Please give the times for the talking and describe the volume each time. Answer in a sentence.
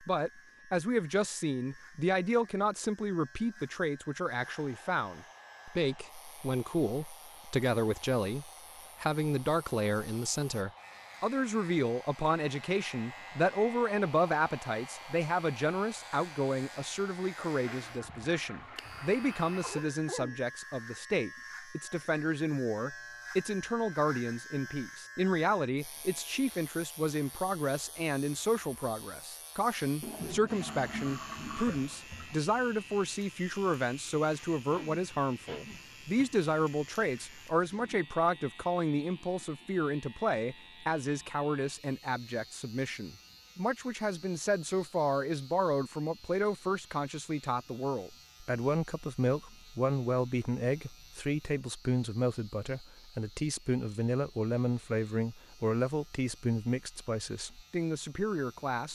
The talking can be heard from 0.1 to 58.9 s, at a steady volume.